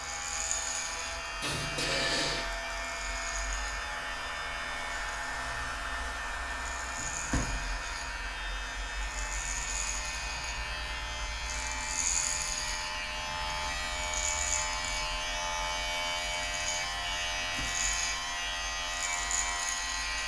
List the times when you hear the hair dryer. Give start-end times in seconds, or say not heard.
0.0-20.2.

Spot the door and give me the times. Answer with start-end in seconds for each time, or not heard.
1.4-2.5, 7.0-7.7, 17.4-17.9.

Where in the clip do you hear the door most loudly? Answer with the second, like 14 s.
2 s.